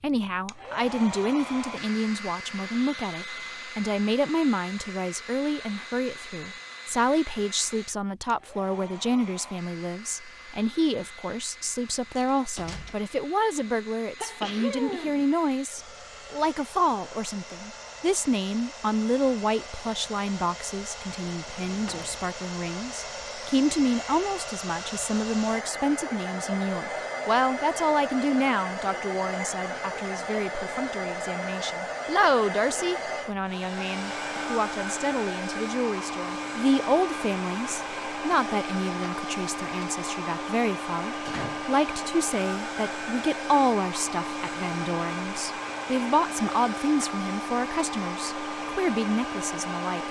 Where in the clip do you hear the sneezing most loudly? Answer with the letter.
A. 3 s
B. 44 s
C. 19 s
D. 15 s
D.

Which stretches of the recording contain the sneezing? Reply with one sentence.
You can hear the sneezing from 13.6 to 15.2 s.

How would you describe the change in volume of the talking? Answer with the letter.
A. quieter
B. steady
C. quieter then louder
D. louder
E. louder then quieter
B.